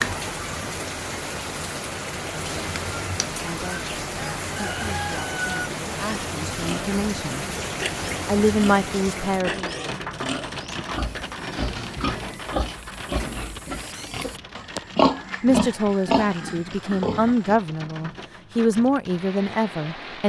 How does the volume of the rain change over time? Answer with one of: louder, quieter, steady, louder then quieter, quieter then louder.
quieter.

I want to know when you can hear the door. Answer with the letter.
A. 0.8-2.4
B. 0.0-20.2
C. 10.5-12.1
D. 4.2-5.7
C.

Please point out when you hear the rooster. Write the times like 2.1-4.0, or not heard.
4.2-5.7.